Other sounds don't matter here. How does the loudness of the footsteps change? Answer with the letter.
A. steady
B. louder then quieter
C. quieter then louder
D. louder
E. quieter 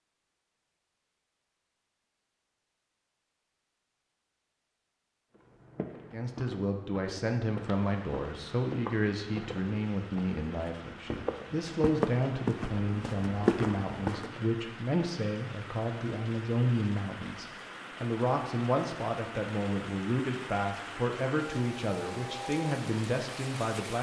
D.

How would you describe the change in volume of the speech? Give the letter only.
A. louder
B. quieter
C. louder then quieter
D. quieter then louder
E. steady
E.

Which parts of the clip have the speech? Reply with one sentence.
The speech can be heard from 6.1 to 23.9 s.